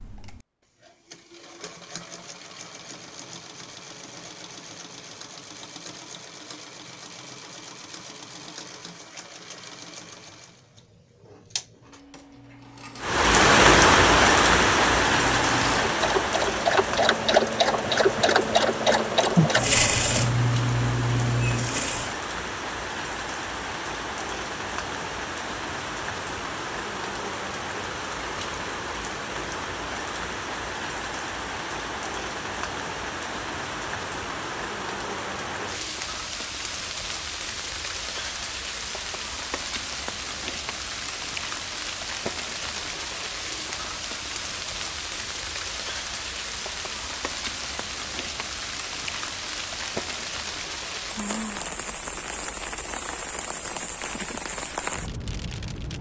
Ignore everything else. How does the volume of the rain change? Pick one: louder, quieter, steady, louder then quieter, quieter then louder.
quieter.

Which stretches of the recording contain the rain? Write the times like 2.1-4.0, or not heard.
13.0-55.9.